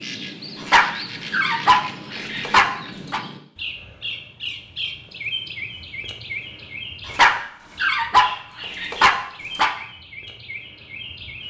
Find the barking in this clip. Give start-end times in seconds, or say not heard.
0.6-3.2, 7.0-9.8.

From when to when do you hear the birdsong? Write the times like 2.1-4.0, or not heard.
0.0-11.4.